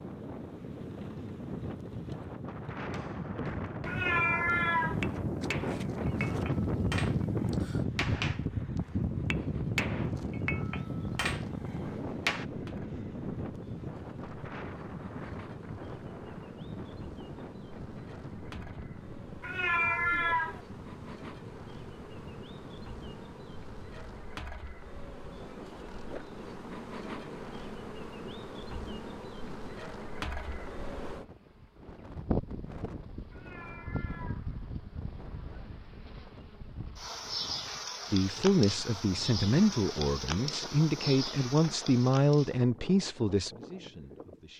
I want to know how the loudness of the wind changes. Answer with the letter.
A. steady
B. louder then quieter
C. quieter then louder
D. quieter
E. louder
D.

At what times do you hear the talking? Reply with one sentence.
You can hear the talking from 38.1 to 44.5 s.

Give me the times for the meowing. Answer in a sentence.
The meowing can be heard from 3.9 to 5.0 s, from 19.4 to 20.6 s and from 33.3 to 34.5 s.